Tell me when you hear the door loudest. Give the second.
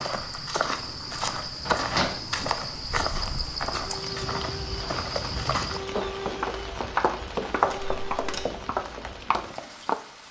2 s.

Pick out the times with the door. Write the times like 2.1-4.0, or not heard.
1.6-2.5, 7.7-8.4.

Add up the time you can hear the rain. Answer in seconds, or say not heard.
10 s.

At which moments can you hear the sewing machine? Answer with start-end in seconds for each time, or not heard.
not heard.